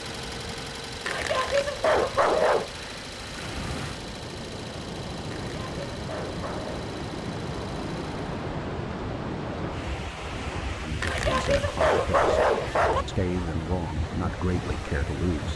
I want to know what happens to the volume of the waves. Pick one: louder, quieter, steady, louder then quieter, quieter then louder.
louder.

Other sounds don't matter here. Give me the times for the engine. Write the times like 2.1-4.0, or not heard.
0.0-8.4.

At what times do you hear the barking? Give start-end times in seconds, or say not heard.
1.1-2.7, 5.3-6.9, 11.0-13.1.